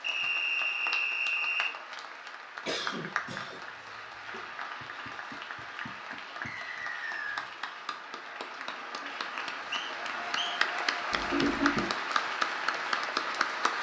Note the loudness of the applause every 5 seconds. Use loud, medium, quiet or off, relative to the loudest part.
medium, medium, loud.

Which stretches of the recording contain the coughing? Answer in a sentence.
The coughing can be heard from 2.6 to 4.4 s and from 11.1 to 11.9 s.